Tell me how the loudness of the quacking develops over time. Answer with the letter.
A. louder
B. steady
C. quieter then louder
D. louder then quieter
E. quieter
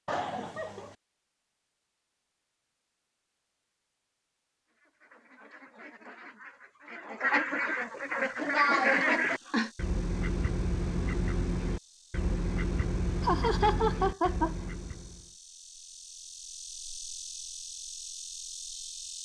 D.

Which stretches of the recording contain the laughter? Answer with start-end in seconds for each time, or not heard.
0.1-0.9, 8.3-9.7, 13.2-14.7.